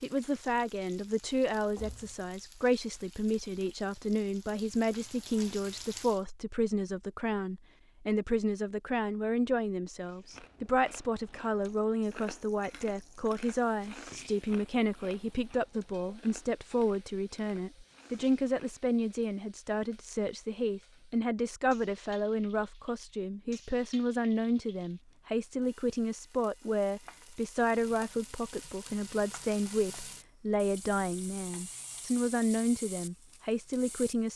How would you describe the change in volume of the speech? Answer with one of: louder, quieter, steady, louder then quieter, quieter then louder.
steady.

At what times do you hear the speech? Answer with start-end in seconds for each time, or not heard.
0.0-34.3.